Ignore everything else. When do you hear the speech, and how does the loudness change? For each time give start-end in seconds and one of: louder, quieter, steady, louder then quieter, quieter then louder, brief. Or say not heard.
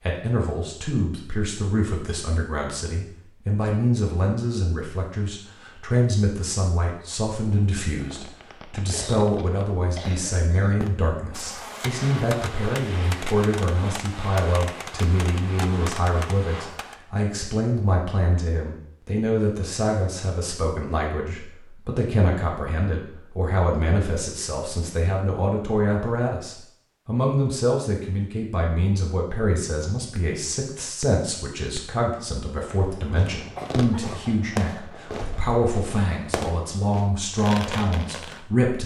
0.1-38.8 steady.